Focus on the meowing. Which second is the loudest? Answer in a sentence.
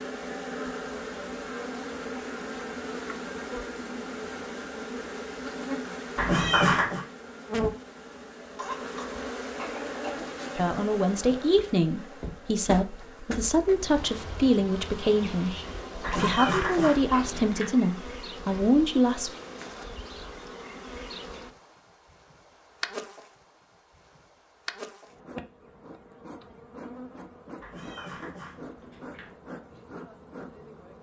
The volume of the meowing peaks at 7 seconds.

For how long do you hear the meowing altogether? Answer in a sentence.
The meowing can be heard for 4 seconds in total.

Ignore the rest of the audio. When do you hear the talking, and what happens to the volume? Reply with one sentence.
The talking can be heard from 10.6 to 19.3 s, at a steady volume.